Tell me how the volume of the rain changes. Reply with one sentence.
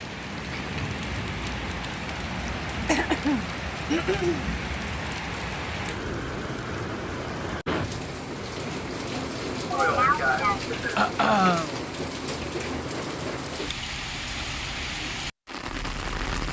The loudness of the rain stays about the same.